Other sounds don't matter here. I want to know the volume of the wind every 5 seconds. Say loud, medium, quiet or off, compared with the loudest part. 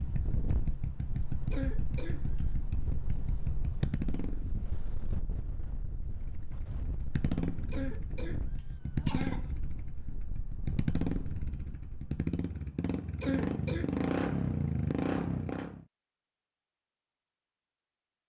loud, loud, medium, off.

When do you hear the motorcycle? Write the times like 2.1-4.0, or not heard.
0.0-4.8, 6.1-15.8.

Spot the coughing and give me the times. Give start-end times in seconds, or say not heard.
1.5-2.4, 7.7-9.5, 13.2-14.1.